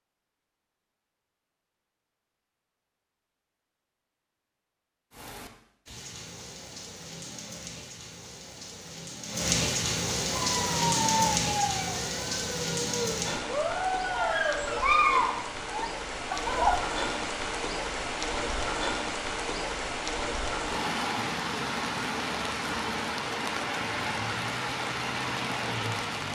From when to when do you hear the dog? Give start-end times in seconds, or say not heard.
10.4-16.9.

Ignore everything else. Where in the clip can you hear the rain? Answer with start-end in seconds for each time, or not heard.
5.1-26.3.